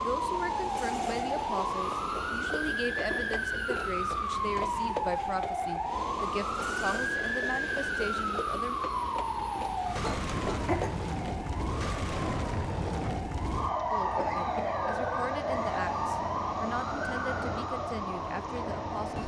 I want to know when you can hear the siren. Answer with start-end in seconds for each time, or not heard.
0.0-19.2.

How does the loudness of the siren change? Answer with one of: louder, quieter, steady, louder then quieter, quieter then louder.
steady.